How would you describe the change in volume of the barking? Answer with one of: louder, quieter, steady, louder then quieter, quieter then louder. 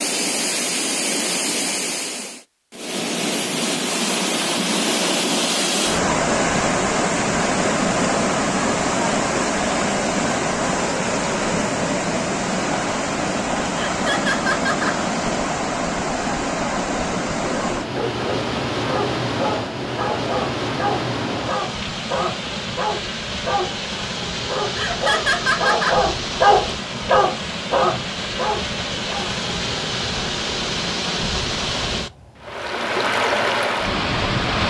louder.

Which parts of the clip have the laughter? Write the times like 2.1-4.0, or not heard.
13.8-15.0, 24.8-26.0.